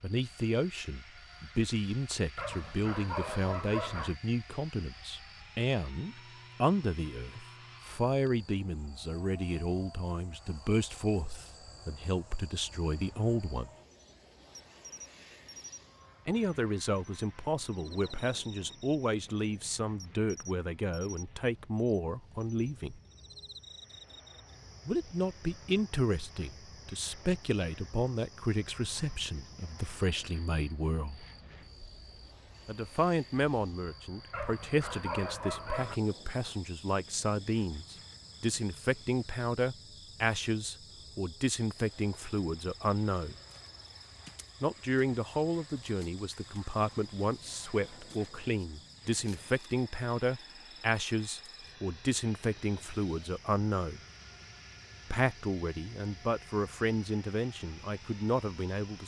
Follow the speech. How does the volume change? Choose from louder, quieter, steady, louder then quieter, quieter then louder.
steady.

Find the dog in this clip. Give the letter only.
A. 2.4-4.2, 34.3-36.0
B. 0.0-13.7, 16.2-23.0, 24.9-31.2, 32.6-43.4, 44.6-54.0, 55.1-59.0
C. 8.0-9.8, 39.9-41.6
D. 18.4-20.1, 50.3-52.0
A.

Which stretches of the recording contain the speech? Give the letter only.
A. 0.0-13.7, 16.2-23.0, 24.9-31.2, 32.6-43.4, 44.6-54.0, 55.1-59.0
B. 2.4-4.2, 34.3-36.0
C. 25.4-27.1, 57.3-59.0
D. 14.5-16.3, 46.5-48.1
A.